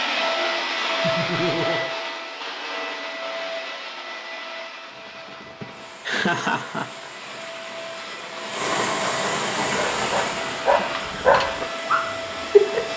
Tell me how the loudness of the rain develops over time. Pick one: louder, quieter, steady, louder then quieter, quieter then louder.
louder then quieter.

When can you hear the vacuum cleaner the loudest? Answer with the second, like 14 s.
1 s.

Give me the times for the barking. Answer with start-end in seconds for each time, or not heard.
9.7-12.9.